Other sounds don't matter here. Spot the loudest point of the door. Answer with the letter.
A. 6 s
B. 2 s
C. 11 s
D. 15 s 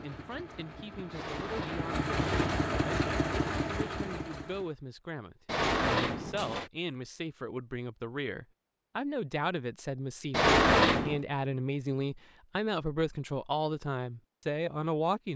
C.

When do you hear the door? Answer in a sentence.
You can hear the door from 1.1 to 2.6 s, from 5.5 to 6.7 s and from 10.3 to 11.2 s.